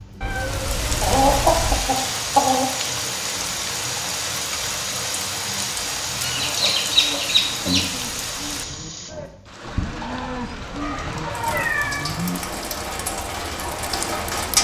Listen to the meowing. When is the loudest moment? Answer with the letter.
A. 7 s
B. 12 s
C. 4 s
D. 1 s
B.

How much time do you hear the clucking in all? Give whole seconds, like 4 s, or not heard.
5 s.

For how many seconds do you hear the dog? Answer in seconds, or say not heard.
not heard.